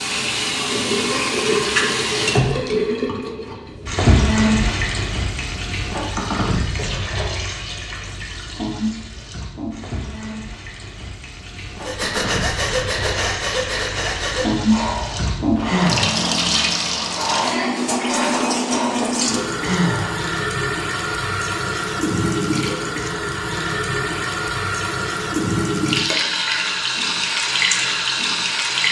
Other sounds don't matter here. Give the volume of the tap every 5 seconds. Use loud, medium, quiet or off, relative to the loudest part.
loud, medium, medium, loud, loud, loud.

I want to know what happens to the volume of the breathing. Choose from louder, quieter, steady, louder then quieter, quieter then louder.
steady.